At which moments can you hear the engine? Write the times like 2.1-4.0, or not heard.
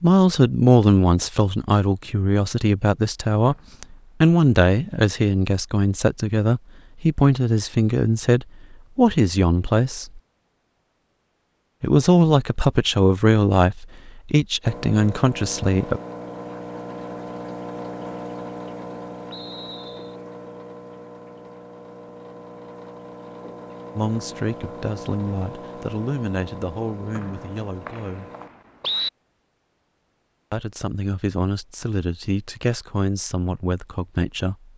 14.6-28.5.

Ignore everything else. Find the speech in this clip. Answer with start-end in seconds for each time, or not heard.
0.0-10.2, 11.8-16.0, 23.9-28.3, 30.5-34.7.